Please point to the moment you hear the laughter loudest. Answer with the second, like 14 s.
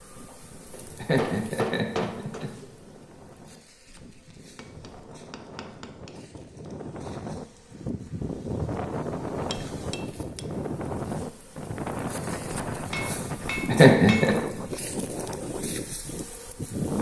14 s.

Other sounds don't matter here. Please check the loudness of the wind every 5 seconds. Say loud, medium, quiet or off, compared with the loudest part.
quiet, loud, loud, loud.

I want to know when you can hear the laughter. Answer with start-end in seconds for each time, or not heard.
0.9-2.6, 13.7-14.3.